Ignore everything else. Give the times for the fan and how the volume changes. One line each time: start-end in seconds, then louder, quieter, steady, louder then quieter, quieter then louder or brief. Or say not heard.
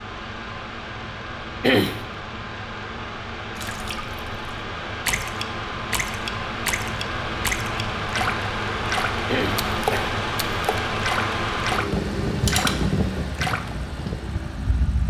0.0-15.0 louder.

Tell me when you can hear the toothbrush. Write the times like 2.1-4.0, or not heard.
not heard.